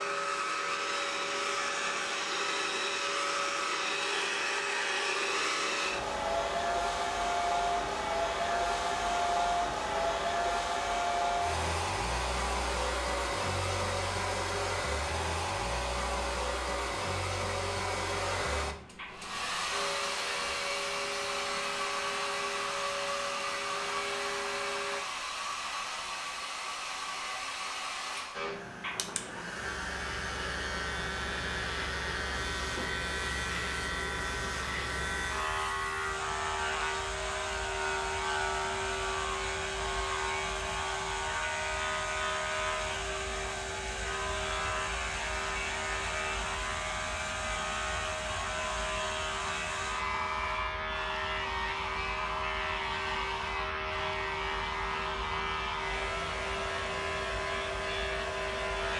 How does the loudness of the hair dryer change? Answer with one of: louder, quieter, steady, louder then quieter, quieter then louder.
quieter.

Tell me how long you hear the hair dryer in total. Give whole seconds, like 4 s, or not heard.
59 s.